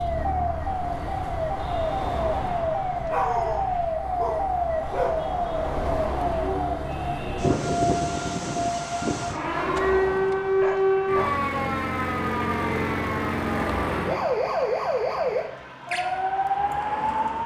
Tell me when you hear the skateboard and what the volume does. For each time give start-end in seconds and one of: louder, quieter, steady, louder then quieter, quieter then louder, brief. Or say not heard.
not heard.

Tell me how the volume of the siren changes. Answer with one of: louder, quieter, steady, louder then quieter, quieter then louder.
steady.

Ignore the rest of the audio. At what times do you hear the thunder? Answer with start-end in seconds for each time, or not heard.
not heard.